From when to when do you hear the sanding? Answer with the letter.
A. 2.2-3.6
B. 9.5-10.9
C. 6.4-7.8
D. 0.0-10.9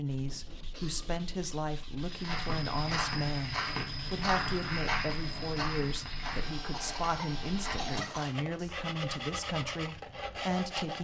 D.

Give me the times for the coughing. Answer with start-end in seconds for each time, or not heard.
0.7-1.1, 6.7-8.3.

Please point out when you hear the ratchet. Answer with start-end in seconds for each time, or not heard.
not heard.